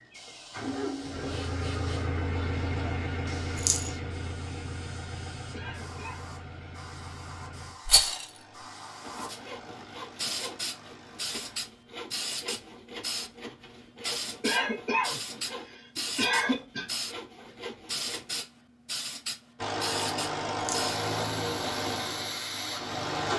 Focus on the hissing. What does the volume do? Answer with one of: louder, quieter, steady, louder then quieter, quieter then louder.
louder.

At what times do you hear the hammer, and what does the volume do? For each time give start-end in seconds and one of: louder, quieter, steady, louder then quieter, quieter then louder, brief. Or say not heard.
not heard.